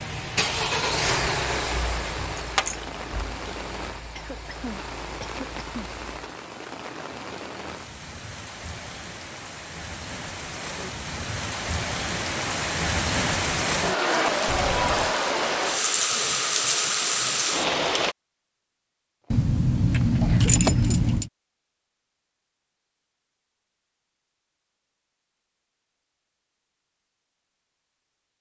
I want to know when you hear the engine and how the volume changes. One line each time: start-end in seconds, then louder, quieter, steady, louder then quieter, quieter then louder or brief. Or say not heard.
0.0-6.3 quieter.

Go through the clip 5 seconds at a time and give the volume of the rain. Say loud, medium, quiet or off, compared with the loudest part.
quiet, quiet, loud, loud, off, off.